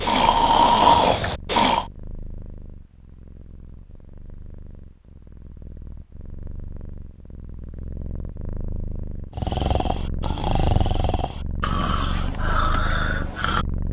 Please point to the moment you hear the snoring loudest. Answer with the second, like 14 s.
1 s.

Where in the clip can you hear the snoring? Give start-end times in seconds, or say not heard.
0.0-1.9, 9.3-13.7.